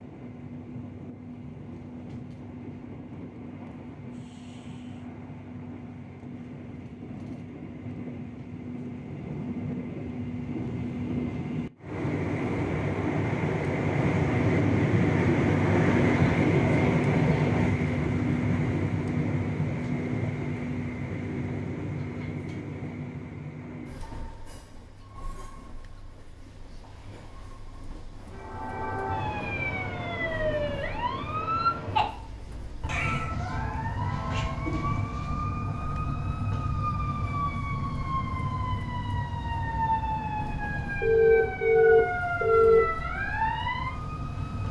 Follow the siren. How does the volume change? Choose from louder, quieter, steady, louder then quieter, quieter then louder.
steady.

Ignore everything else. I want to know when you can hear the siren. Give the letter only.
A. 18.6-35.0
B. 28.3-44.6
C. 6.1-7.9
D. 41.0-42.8
B.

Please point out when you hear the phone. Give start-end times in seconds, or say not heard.
41.0-42.8.